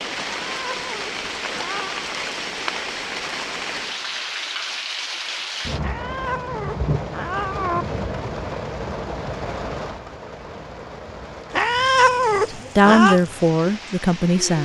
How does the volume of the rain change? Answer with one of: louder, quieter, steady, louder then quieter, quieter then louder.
quieter.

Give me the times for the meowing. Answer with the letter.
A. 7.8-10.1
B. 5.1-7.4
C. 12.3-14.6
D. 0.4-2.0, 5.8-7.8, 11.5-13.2
D.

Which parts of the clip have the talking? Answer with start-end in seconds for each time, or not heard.
12.3-14.6.